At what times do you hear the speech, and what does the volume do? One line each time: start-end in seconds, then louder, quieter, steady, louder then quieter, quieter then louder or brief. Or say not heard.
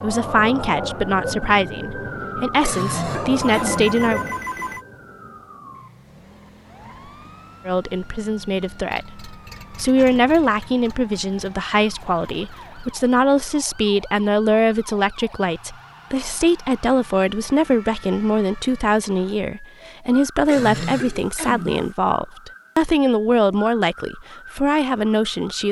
0.0-4.2 quieter then louder
7.7-25.6 steady.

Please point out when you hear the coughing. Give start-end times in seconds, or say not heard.
2.6-4.0, 20.4-21.9.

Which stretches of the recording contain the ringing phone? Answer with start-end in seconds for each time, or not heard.
3.4-4.8.